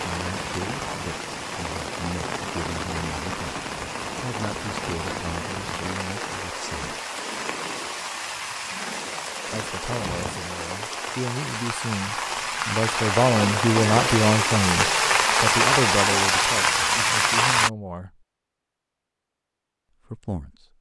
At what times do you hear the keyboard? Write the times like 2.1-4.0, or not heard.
not heard.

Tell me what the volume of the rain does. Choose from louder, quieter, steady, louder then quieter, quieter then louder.
louder.